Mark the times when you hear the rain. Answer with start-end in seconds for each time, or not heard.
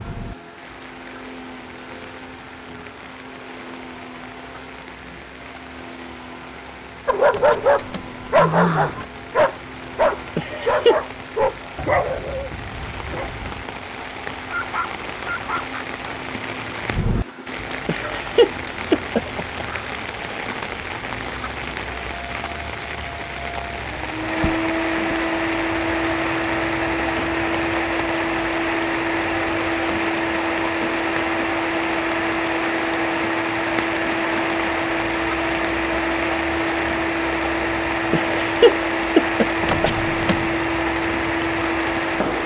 0.0-42.4.